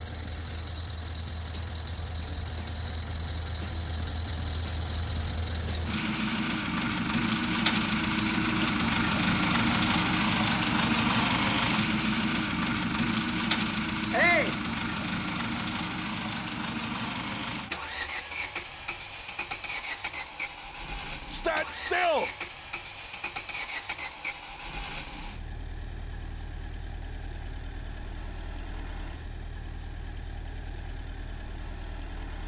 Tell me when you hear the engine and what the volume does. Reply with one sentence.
You can hear the engine from 0.0 to 32.4 s, getting louder then quieter.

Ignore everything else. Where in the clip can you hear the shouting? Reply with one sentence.
The shouting can be heard from 14.1 to 14.6 s and from 21.3 to 22.3 s.